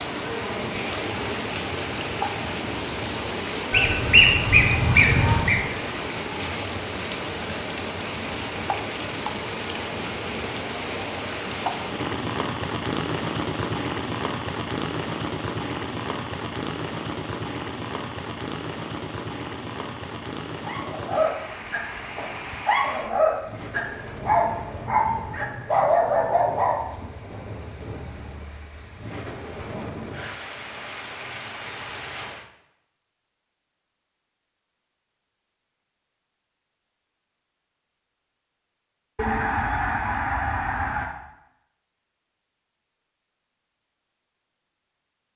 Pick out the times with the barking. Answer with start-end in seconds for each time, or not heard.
20.6-26.9.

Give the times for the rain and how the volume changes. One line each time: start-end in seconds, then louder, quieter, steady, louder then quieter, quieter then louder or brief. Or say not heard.
0.0-32.5 quieter.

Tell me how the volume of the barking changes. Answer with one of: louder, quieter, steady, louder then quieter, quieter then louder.
steady.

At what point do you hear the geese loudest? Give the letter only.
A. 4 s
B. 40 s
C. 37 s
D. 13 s
A.